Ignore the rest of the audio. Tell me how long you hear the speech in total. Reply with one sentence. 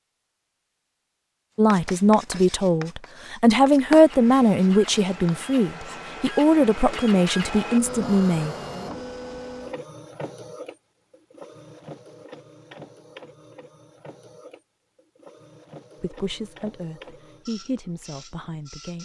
You can hear the speech for 10 seconds altogether.